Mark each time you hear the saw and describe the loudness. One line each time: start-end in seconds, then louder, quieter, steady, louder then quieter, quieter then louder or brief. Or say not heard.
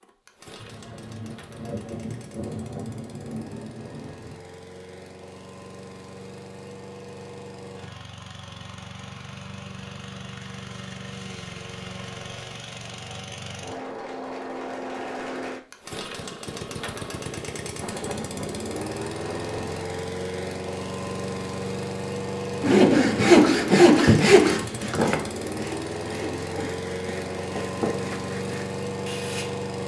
22.6-29.6 quieter.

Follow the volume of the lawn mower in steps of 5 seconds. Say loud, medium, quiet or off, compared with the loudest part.
quiet, medium, medium, loud, loud, loud.